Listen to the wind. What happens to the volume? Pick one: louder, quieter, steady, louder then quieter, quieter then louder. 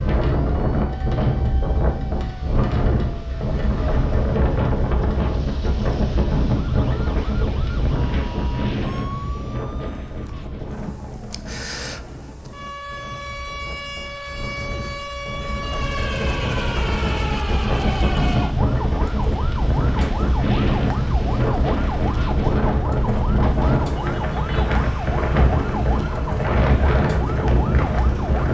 quieter then louder.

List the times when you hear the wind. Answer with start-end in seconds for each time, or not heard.
0.0-28.4.